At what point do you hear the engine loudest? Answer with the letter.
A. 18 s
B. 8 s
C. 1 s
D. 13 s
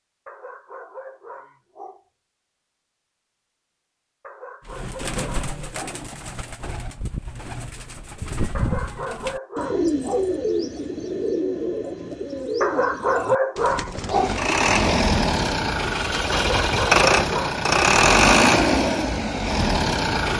A.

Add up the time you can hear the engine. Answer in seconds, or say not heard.
6 s.